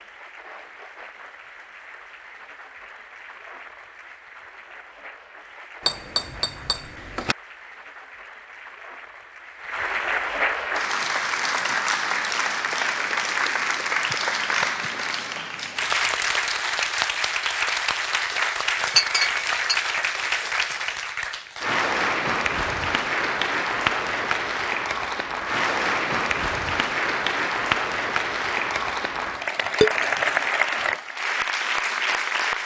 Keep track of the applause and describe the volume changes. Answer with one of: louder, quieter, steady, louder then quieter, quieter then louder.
louder.